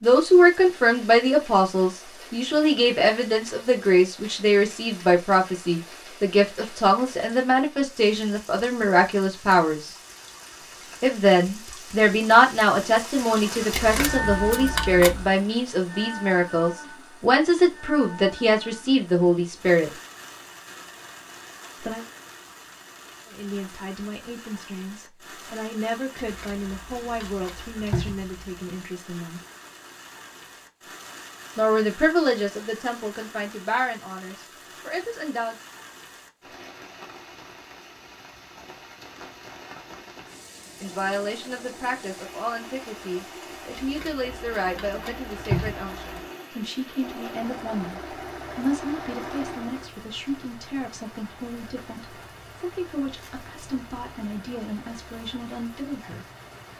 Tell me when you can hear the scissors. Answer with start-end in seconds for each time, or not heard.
13.7-15.3, 26.1-28.4, 43.7-46.2.